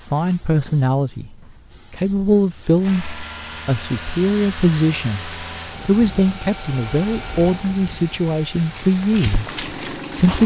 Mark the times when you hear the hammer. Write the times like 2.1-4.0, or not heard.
not heard.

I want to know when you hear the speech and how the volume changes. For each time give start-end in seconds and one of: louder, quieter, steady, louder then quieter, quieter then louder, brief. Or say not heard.
0.0-10.4 steady.